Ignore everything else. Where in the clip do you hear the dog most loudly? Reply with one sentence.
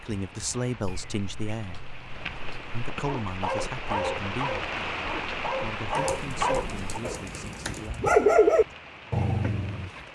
The loudest moment of the dog is at 8 seconds.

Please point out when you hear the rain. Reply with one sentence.
You can hear the rain from 0.0 to 10.1 s.